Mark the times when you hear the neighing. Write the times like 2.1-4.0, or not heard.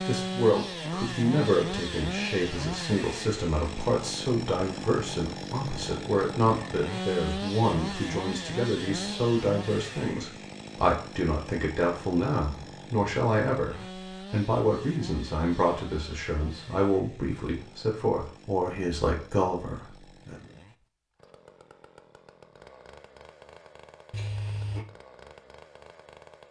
24.1-24.9.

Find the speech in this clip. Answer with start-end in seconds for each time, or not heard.
0.0-20.5.